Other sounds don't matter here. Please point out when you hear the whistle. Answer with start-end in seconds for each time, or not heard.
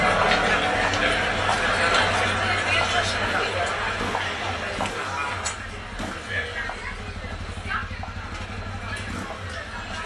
not heard.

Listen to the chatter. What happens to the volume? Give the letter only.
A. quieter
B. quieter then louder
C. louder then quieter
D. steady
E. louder
A.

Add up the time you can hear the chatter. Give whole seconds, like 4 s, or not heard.
10 s.